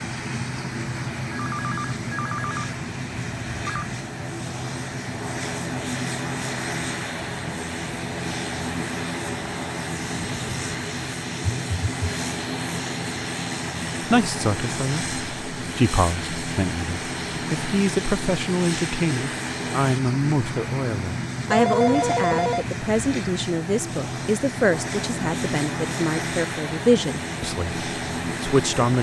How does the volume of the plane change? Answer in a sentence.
The loudness of the plane stays about the same.